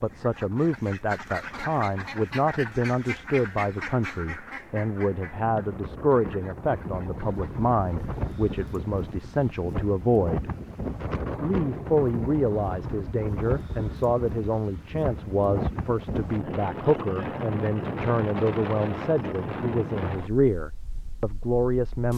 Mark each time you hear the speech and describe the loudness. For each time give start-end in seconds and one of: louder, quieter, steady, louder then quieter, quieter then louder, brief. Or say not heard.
0.0-10.5 steady
11.4-22.1 steady.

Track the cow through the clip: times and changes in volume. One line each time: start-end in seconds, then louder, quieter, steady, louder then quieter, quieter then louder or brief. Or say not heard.
not heard.